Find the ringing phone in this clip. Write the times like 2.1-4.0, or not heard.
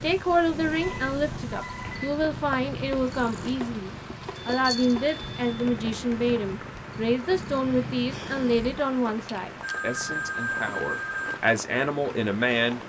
0.8-2.0, 4.3-5.5, 9.6-11.3.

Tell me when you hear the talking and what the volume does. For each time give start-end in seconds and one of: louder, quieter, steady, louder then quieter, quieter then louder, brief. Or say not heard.
0.0-12.8 steady.